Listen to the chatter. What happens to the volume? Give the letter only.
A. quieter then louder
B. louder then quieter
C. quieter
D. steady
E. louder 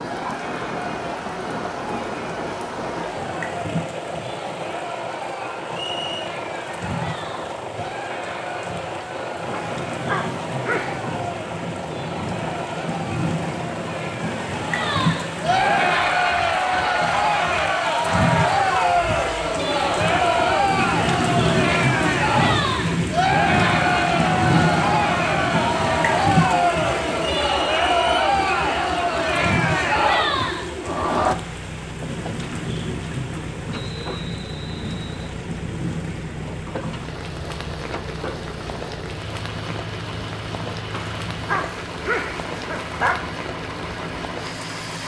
E.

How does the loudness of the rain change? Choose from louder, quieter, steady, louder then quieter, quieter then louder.
louder then quieter.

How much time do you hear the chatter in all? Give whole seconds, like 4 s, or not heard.
31 s.